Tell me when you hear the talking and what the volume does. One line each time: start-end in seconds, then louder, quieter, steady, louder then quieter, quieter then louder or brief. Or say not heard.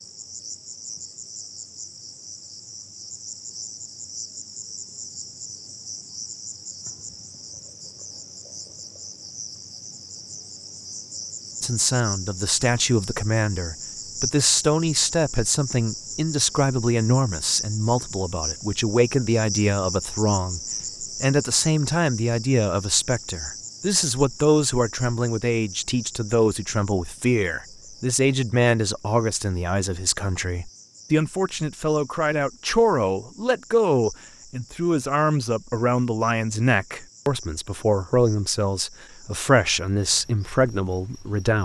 11.6-41.5 steady.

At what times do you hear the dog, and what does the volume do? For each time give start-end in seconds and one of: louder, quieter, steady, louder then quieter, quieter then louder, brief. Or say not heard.
not heard.